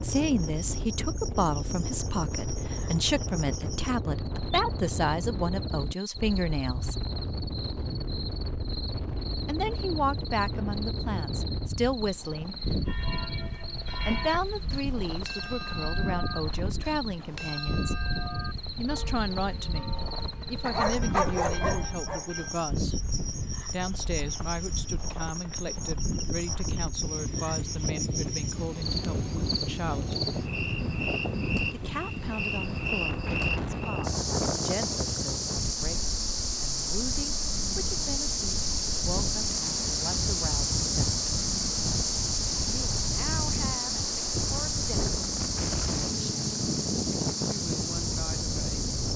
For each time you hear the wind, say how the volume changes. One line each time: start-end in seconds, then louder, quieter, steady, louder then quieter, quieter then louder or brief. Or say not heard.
0.0-49.1 steady.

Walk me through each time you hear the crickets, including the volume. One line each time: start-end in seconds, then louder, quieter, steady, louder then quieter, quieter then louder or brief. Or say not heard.
0.2-49.1 louder.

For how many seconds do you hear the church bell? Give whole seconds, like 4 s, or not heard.
10 s.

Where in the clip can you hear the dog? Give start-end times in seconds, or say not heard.
20.6-22.2.